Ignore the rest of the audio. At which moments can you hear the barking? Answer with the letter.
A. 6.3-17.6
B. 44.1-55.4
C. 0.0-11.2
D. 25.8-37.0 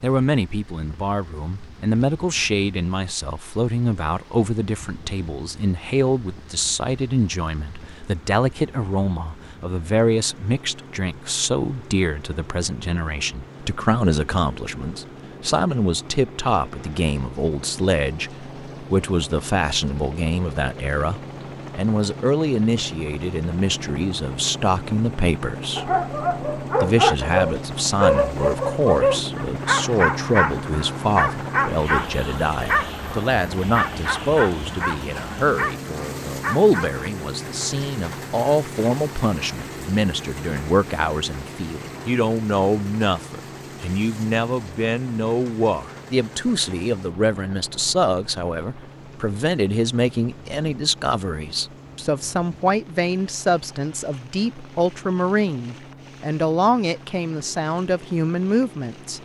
D.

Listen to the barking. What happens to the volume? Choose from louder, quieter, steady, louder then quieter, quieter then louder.
quieter.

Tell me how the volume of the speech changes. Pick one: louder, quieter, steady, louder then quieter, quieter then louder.
steady.